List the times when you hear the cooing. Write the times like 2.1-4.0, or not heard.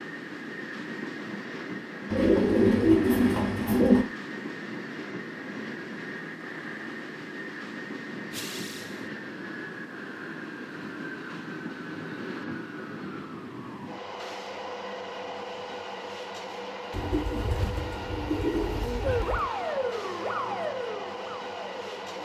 2.1-4.0, 16.9-19.4.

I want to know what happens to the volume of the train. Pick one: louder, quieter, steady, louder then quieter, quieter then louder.
steady.